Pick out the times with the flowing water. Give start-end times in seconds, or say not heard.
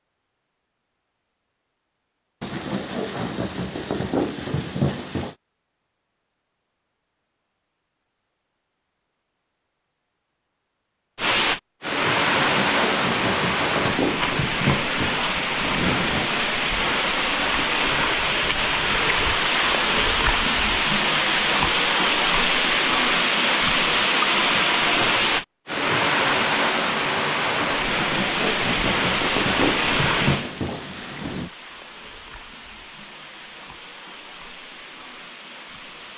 11.2-36.1.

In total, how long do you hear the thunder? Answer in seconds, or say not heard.
11 s.